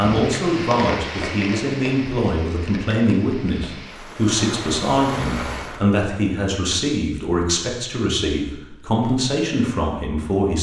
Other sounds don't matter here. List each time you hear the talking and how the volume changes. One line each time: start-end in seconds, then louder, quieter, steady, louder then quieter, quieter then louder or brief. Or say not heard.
0.0-10.5 steady.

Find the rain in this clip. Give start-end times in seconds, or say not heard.
0.0-5.8.